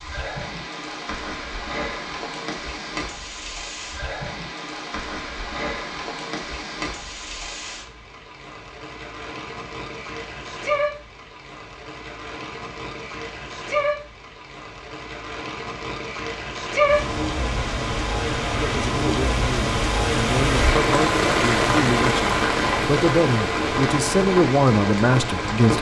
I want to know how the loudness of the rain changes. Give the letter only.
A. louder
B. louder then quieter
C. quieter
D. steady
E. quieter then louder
A.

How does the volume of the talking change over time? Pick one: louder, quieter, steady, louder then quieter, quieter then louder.
louder.